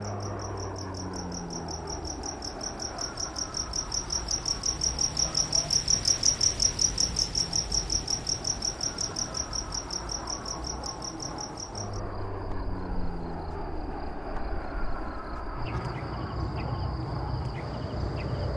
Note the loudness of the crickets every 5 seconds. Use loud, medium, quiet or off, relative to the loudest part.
medium, loud, quiet, medium.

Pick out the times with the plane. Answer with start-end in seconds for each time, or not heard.
0.0-18.5.